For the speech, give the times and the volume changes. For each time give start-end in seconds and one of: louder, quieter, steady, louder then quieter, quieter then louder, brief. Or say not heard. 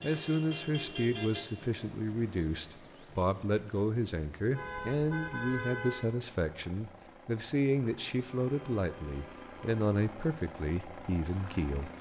0.0-11.9 steady.